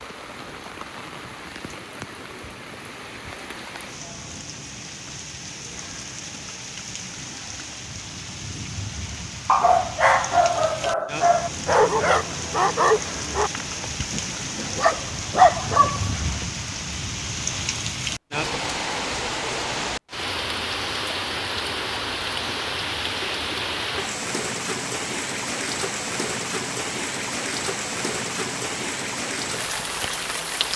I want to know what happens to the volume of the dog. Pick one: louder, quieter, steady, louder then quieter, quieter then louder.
quieter then louder.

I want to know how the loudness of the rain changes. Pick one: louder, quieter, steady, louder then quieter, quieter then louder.
louder.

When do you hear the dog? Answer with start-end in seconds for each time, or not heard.
9.4-16.4.